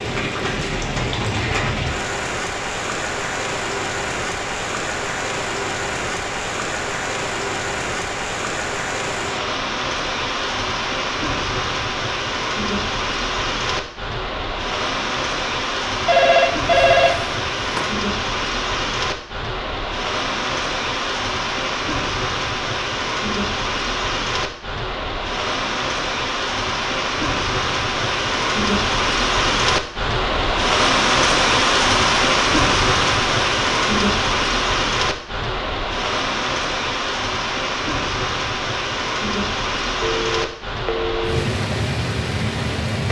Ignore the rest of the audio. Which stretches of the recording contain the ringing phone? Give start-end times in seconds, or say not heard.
16.1-17.9, 40.0-41.5.